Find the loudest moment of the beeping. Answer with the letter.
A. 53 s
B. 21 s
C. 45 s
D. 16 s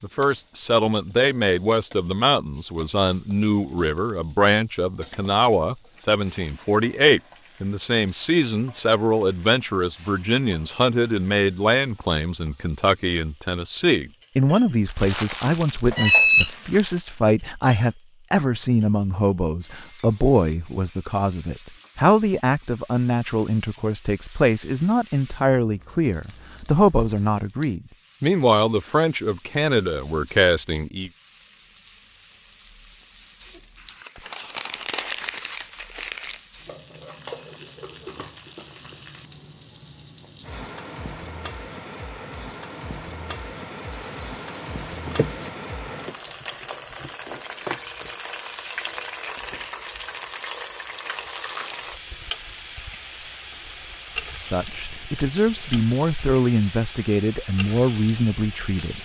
D.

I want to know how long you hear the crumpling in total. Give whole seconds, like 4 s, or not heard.
7 s.